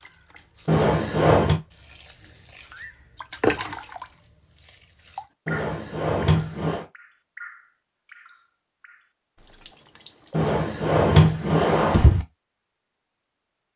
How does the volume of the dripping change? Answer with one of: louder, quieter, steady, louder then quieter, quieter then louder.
louder then quieter.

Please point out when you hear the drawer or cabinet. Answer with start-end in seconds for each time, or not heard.
0.7-1.6, 5.5-6.8, 10.3-12.2.